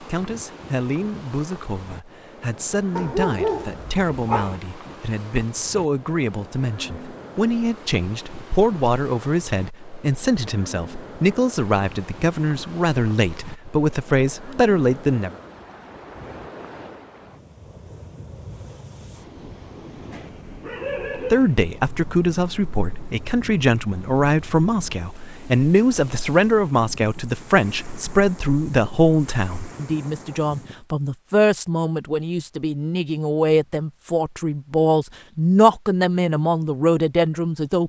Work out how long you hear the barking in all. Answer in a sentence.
You can hear the barking for 3 seconds altogether.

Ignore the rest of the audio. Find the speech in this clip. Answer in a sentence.
The speech can be heard from 0.0 to 15.3 s and from 21.3 to 37.8 s.